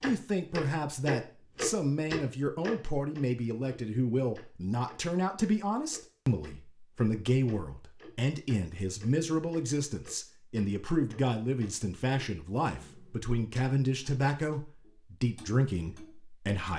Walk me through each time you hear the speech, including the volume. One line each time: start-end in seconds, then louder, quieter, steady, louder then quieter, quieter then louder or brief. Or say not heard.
0.0-16.7 steady.